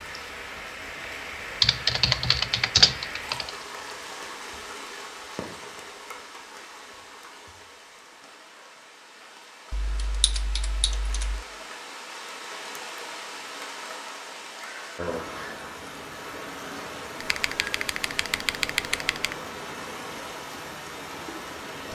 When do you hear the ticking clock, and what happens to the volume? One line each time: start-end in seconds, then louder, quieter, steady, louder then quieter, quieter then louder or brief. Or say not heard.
not heard.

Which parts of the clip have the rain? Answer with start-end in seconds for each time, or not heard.
0.0-21.9.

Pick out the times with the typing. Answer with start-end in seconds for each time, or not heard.
1.6-3.5, 9.7-11.4, 17.2-19.4.